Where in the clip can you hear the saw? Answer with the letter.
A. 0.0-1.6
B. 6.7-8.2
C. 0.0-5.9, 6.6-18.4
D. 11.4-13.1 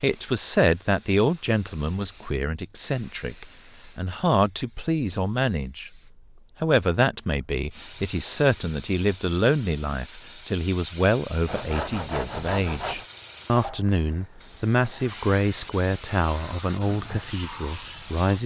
D.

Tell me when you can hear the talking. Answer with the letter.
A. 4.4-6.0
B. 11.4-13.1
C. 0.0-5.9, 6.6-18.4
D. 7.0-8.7
C.